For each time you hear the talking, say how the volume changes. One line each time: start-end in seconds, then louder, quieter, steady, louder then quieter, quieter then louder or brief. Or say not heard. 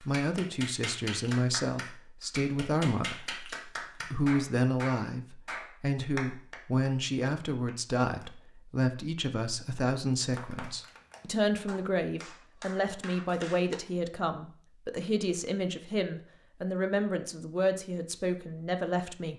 0.0-19.3 steady.